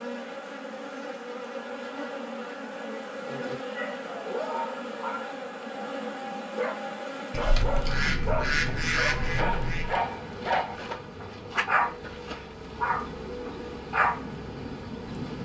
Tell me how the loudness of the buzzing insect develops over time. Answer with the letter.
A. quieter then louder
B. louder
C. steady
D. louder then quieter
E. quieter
C.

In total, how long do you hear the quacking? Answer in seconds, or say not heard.
3 s.